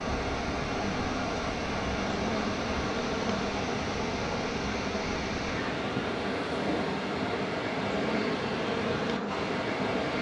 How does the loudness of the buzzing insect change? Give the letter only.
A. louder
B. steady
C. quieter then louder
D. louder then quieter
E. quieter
B.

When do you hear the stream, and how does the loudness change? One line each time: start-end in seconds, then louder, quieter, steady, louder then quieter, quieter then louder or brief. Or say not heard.
0.0-10.1 steady.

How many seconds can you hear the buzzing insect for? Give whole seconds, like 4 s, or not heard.
10 s.